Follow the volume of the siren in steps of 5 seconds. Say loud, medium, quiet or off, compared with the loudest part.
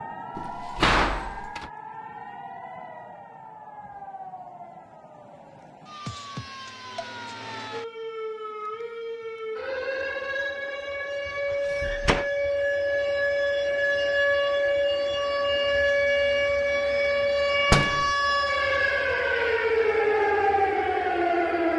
quiet, quiet, loud, loud, loud.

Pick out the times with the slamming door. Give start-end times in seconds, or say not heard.
0.3-1.7, 11.5-12.3, 17.7-18.1.